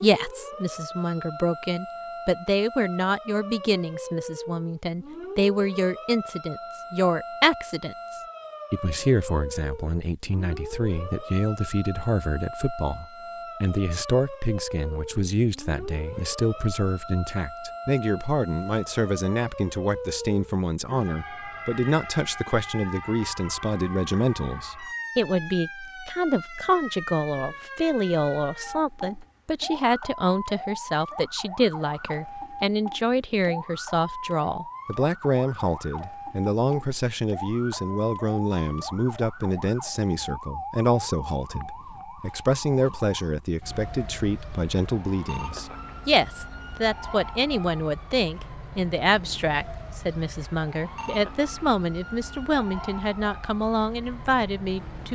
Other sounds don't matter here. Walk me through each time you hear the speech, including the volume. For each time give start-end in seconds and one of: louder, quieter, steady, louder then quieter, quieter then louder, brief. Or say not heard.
0.0-55.0 steady.